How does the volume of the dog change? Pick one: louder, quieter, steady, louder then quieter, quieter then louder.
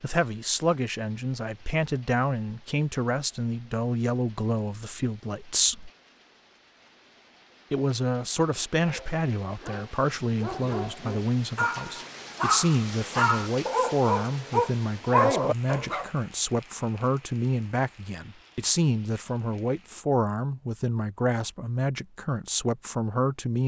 louder.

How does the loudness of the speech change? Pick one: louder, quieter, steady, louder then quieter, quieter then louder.
steady.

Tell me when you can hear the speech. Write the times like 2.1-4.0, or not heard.
0.0-5.9, 7.7-23.6.